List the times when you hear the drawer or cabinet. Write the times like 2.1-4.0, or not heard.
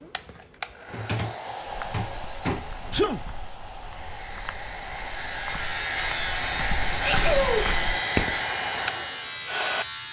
0.8-3.1.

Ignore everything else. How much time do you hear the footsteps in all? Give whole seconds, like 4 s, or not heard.
7 s.